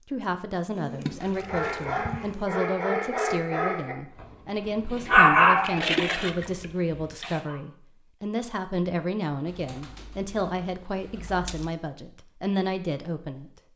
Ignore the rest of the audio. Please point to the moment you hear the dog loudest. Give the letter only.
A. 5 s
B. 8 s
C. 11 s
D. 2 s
A.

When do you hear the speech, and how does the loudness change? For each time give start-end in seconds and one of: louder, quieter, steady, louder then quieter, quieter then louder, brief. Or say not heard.
0.1-13.7 steady.